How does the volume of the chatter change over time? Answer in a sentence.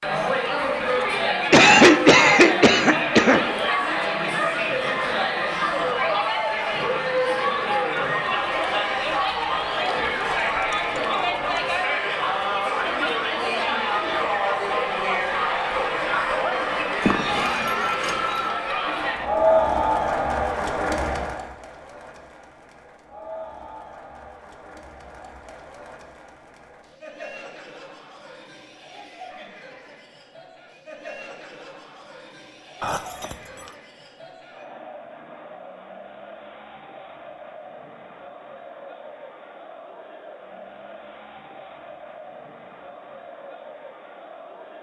The loudness of the chatter goes down.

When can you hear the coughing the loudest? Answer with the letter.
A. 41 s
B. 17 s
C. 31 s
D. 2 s
D.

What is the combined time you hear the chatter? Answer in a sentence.
The chatter can be heard for 45 seconds in total.